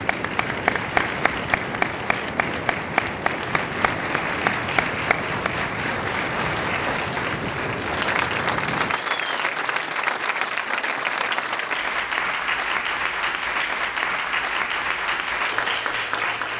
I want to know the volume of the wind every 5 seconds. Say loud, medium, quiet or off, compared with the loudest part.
loud, loud, off, off.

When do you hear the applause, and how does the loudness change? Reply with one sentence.
The applause can be heard from 0.0 to 16.5 s, at a steady volume.